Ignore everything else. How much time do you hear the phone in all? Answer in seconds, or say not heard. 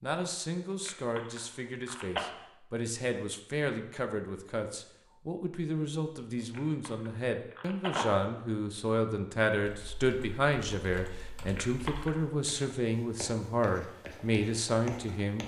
4 s.